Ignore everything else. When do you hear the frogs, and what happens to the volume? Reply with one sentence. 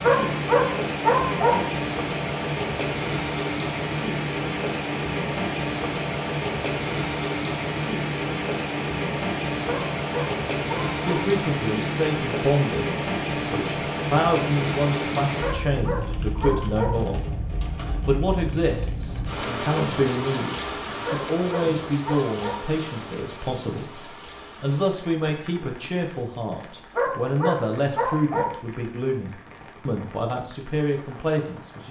You can't hear the frogs here.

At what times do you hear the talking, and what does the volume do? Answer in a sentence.
The talking can be heard from 11.1 to 31.8 s, at a steady volume.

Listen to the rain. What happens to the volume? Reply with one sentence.
The loudness of the rain goes down.